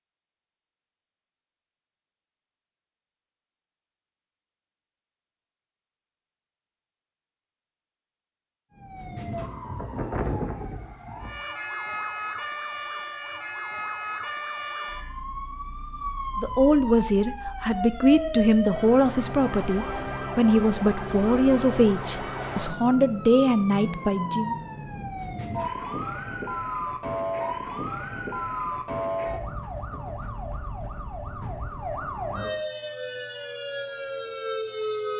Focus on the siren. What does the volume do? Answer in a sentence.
The loudness of the siren stays about the same.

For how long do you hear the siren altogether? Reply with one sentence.
You can hear the siren for 26 seconds altogether.